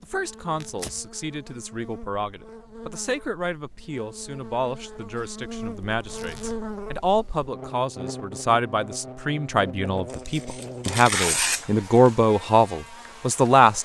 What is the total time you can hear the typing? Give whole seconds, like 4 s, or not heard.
not heard.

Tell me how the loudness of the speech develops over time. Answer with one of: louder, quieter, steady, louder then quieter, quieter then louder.
louder.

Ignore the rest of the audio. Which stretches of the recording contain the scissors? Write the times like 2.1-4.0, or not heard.
not heard.